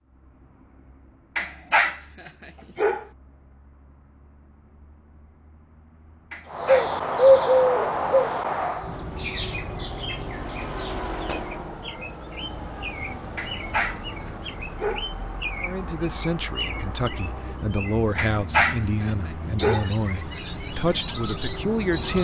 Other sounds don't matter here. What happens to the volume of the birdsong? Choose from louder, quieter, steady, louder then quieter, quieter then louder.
quieter.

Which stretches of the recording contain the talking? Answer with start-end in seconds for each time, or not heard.
15.6-22.1.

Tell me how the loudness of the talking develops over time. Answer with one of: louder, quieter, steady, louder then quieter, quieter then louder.
steady.